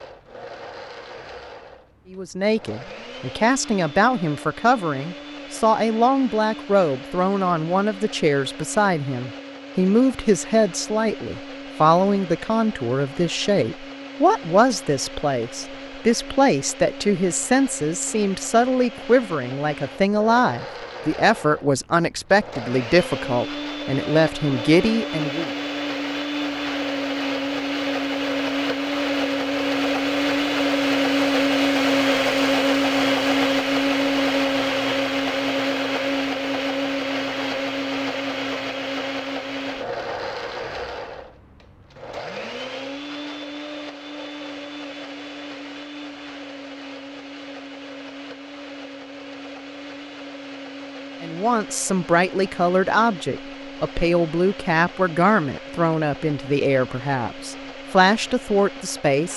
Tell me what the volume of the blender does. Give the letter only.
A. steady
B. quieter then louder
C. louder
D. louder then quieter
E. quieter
D.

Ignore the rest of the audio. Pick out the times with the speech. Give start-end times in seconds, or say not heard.
2.1-25.5, 51.2-59.3.